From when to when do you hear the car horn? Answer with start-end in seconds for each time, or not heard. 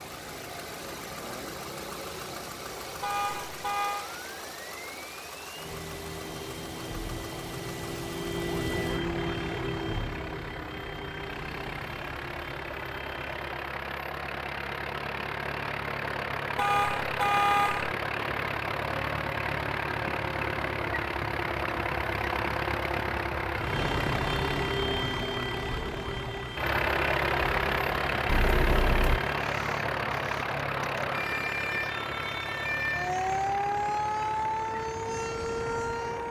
3.0-4.1, 16.6-17.9, 28.2-29.2.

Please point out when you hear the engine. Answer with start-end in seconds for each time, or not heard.
0.0-36.2.